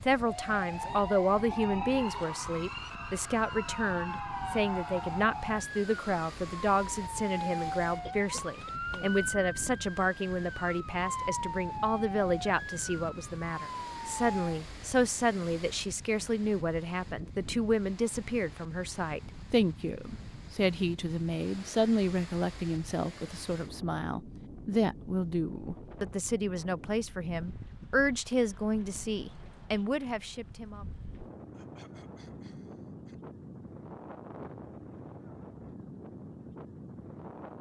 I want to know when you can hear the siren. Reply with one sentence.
You can hear the siren from 0.2 to 14.6 s.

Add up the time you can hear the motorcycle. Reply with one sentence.
The motorcycle can't be heard in this clip.